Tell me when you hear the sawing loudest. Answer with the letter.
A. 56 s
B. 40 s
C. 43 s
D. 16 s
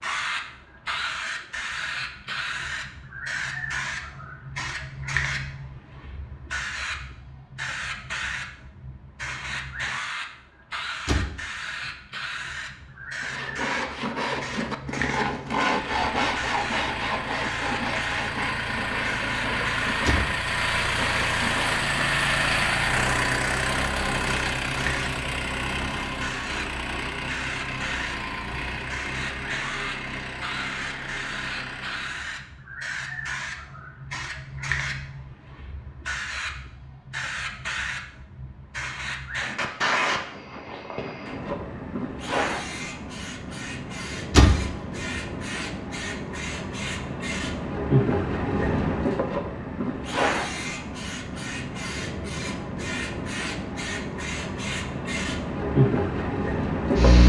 D.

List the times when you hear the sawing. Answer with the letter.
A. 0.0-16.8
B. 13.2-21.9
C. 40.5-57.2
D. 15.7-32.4
B.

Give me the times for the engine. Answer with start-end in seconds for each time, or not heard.
15.7-32.4.